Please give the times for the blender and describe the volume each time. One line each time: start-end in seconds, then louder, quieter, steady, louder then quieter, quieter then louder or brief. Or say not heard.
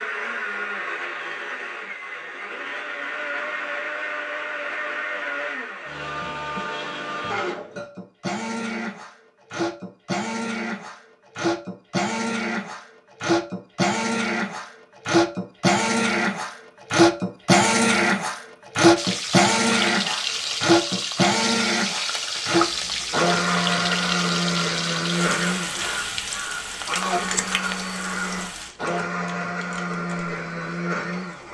0.0-31.4 louder then quieter.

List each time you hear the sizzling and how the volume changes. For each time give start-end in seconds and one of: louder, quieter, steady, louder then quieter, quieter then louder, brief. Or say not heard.
18.9-31.4 quieter.